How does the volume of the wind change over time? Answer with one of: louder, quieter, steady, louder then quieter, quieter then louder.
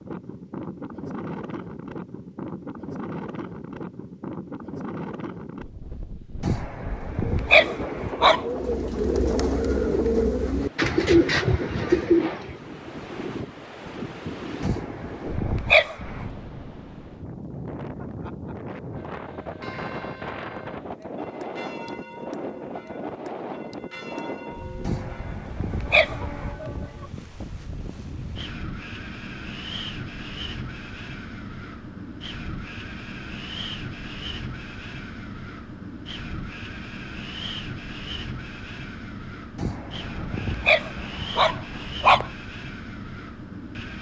steady.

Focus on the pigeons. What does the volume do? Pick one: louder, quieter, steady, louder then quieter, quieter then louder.
louder.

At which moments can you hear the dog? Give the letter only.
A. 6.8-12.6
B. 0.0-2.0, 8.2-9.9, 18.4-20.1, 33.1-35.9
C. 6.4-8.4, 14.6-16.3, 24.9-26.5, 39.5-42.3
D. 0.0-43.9
C.